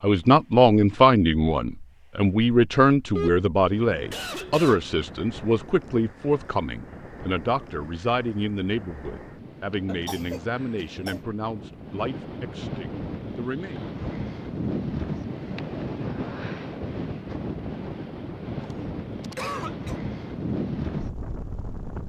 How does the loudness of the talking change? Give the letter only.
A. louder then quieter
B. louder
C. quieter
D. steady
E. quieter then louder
C.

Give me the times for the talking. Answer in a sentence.
The talking can be heard from 0.0 to 13.8 s.